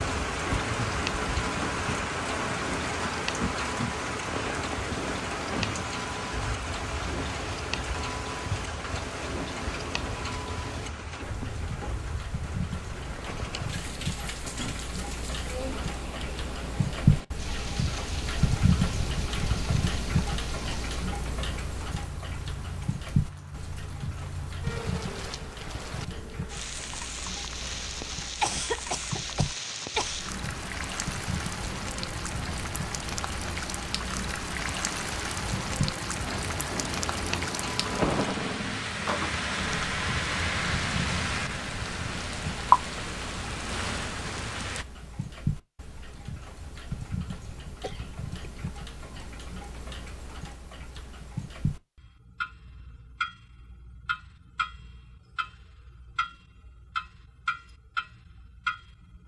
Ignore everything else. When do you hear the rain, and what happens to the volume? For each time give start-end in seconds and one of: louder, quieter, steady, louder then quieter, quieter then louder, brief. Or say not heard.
0.0-44.9 quieter then louder.